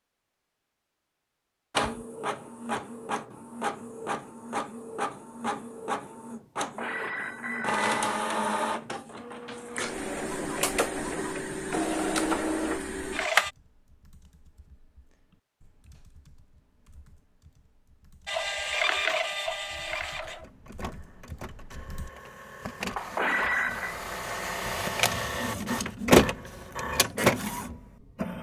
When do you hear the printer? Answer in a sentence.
You can hear the printer from 1.7 to 13.5 s and from 18.2 to 28.3 s.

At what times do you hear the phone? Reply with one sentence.
You can hear the phone from 6.5 to 7.9 s and from 22.9 to 23.9 s.